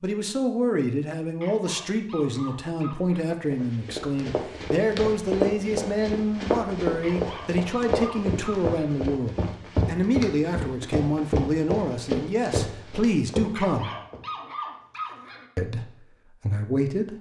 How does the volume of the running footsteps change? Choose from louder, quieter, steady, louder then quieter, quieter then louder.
steady.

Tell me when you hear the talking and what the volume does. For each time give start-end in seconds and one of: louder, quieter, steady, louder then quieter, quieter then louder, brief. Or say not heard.
0.0-13.9 steady
15.6-17.1 brief.